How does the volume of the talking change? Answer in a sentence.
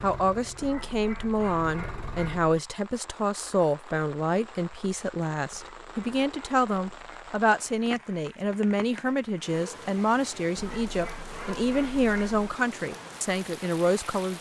The volume of the talking stays about the same.